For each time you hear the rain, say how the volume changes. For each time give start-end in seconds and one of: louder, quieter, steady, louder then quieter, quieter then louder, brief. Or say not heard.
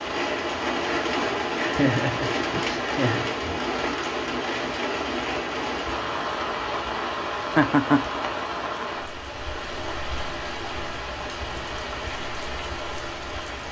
0.0-13.6 quieter.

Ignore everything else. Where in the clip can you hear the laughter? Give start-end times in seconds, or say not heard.
1.6-3.4, 7.5-8.1.